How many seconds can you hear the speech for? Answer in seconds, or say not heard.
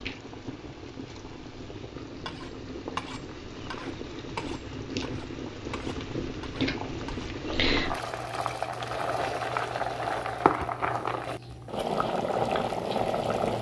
not heard.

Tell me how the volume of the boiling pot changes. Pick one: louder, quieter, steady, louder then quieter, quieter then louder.
louder.